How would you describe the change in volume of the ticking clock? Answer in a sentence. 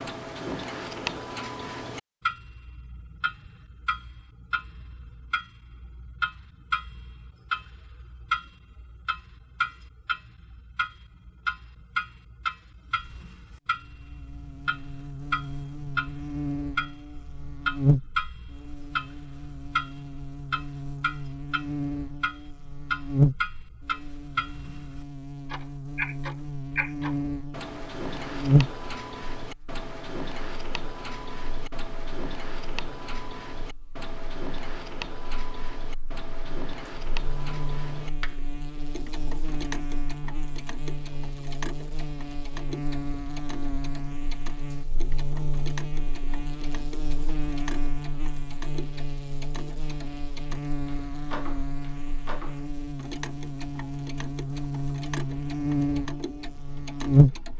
The volume of the ticking clock goes down.